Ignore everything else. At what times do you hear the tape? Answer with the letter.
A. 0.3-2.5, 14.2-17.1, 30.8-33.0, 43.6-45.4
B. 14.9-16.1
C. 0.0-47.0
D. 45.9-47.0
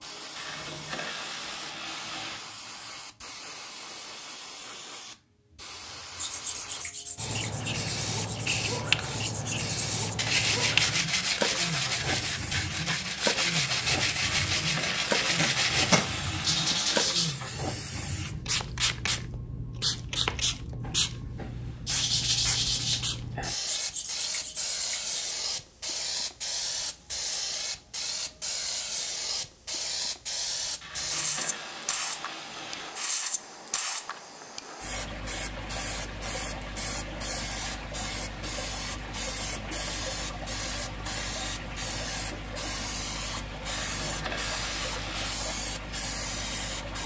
B.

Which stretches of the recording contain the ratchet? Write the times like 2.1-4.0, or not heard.
0.3-2.5, 14.2-17.1, 30.8-33.0, 43.6-45.4.